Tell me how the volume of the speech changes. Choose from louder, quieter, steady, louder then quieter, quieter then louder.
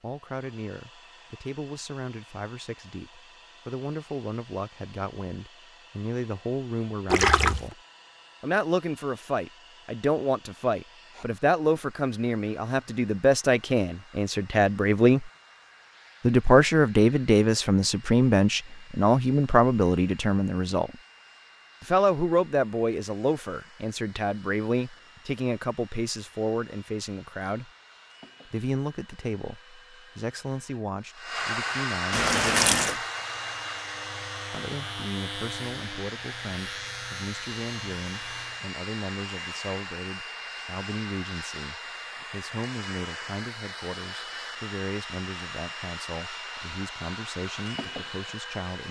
louder then quieter.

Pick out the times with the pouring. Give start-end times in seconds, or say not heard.
7.1-7.7, 32.1-33.0.